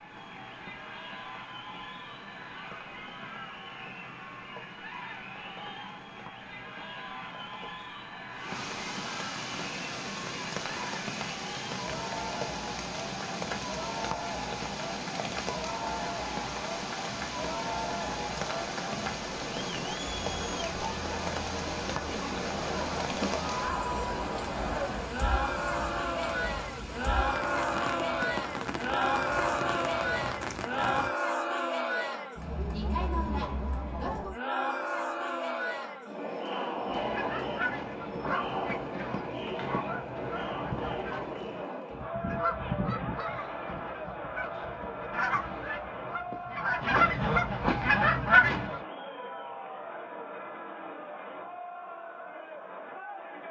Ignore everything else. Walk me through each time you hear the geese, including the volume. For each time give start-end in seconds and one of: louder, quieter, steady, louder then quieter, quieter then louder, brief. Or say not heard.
36.8-48.8 louder.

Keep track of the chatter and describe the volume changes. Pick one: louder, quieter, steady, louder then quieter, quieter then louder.
louder then quieter.